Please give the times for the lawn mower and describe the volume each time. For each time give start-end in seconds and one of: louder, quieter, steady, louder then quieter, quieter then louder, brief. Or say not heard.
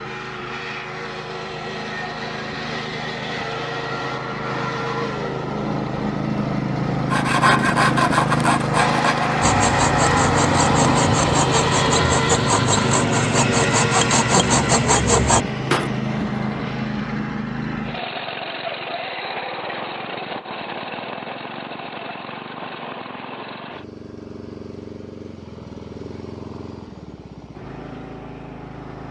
0.0-29.0 louder then quieter.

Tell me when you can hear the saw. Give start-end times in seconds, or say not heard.
7.1-15.9.